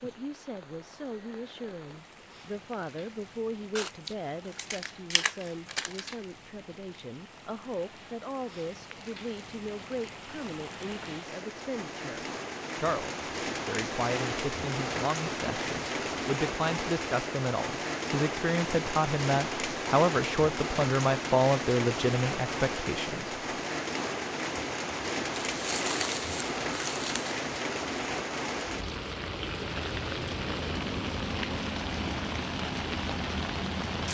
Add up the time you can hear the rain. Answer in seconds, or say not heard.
34 s.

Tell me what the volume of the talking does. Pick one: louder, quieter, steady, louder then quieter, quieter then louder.
louder.